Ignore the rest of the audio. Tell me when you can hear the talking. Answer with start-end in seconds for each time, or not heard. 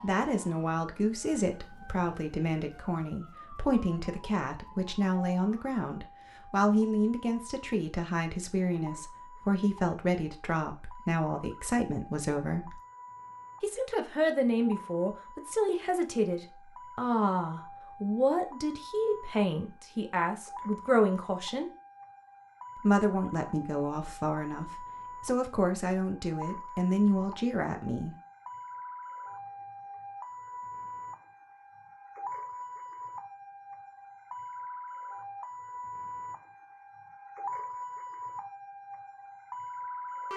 0.0-12.8, 13.6-21.7, 22.8-28.1.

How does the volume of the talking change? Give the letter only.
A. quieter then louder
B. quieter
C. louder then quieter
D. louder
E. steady
E.